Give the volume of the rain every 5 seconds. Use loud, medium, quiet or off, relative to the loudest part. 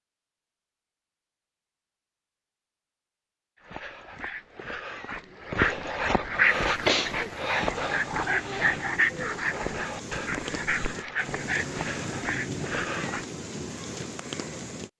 off, medium, loud.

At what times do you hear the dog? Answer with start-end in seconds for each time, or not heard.
3.6-13.2.